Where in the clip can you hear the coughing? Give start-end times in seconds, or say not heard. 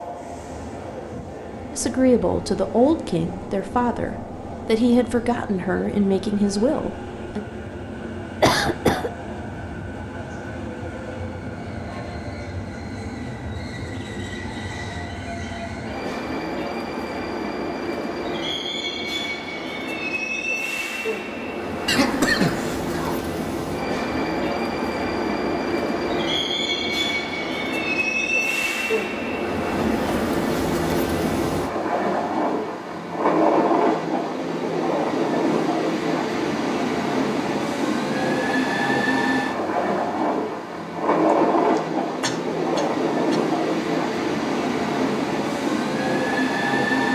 8.4-9.1, 21.9-23.2, 41.8-43.4.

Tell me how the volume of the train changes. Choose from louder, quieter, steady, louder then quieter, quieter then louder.
louder.